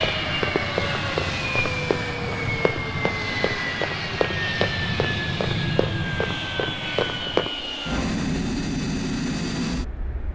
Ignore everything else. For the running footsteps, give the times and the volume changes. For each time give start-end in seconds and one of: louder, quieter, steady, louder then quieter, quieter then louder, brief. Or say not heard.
0.0-7.5 steady.